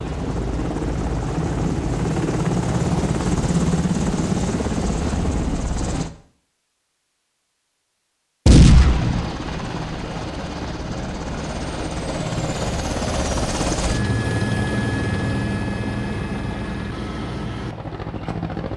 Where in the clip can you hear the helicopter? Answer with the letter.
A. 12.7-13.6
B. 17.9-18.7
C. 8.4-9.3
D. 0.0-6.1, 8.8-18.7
D.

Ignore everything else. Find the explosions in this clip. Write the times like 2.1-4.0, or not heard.
8.4-9.3.